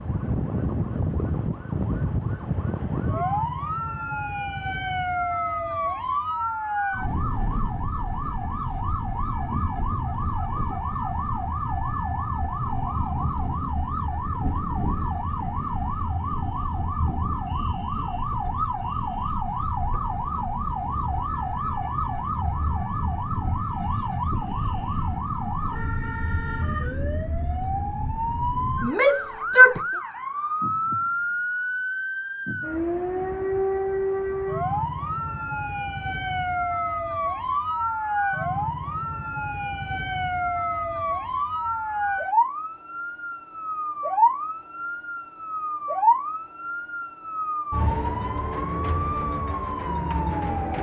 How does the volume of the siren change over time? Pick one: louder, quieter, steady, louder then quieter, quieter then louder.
steady.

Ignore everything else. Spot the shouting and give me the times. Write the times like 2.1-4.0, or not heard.
28.8-29.8.